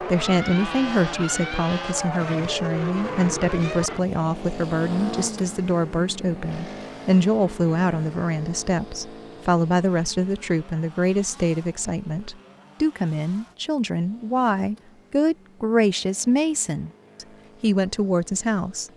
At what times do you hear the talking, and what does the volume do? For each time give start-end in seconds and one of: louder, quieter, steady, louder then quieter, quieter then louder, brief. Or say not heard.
0.0-18.9 steady.